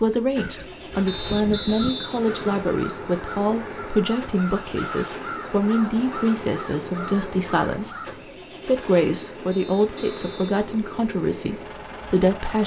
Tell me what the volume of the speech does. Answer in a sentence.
The volume of the speech stays about the same.